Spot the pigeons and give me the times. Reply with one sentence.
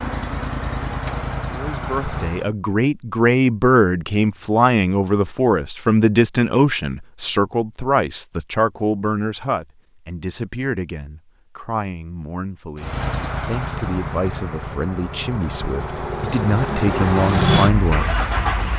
The pigeons can't be heard in this clip.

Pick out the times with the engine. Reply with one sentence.
You can hear the engine from 0.0 to 2.5 s and from 12.8 to 18.7 s.